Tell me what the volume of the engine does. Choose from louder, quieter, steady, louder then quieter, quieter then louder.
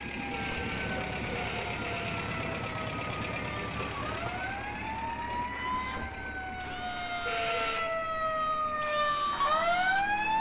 quieter.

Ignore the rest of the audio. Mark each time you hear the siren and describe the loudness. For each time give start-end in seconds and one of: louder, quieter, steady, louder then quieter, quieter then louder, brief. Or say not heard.
0.0-10.3 louder.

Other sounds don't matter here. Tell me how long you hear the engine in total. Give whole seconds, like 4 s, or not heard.
10 s.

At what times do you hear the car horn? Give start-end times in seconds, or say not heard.
0.3-2.1, 7.2-7.8.